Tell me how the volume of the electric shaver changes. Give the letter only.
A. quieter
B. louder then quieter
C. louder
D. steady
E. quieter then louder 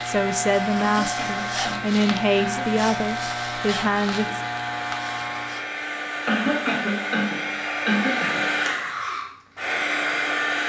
D.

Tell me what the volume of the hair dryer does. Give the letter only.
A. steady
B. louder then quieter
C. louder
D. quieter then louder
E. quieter
C.